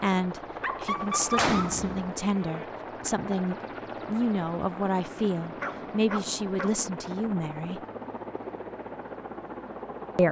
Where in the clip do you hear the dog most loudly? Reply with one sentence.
The loudest moment of the dog is at 1 second.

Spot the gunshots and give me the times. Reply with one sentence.
The gunshots can be heard from 0.9 to 2.6 s.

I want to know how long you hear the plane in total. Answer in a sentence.
The plane can be heard for 10 seconds in total.